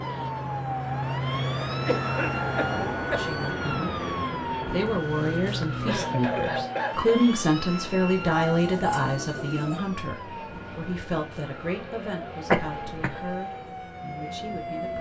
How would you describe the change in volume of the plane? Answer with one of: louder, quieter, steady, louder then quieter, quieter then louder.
quieter.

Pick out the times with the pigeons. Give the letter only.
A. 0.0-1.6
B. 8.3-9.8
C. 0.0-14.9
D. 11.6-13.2
B.